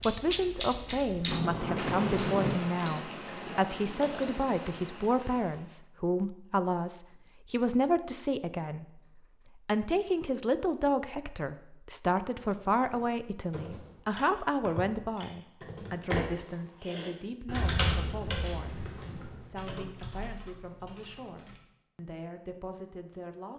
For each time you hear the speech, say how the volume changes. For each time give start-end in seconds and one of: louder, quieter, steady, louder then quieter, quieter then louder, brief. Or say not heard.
0.0-23.5 quieter.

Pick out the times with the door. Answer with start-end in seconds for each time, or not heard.
1.2-2.6.